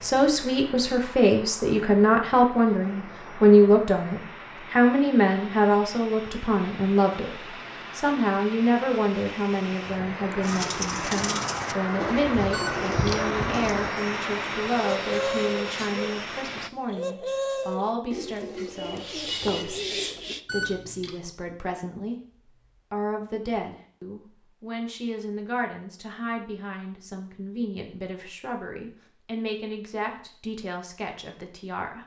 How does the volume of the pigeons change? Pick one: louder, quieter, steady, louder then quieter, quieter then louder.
steady.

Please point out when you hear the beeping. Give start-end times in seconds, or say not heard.
12.5-13.2, 20.4-21.1.